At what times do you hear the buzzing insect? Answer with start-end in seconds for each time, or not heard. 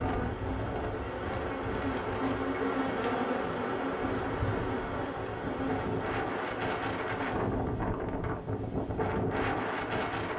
0.0-7.5.